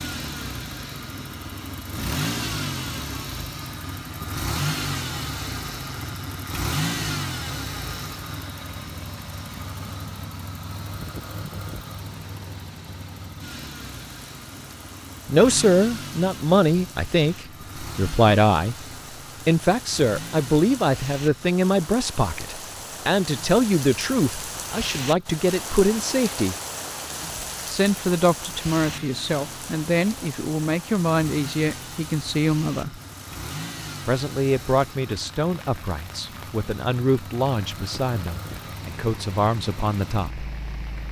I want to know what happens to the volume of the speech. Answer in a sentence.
The volume of the speech goes down.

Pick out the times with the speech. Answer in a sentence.
You can hear the speech from 15.2 to 18.9 s, from 19.4 to 26.6 s, from 27.6 to 33.0 s and from 34.0 to 40.5 s.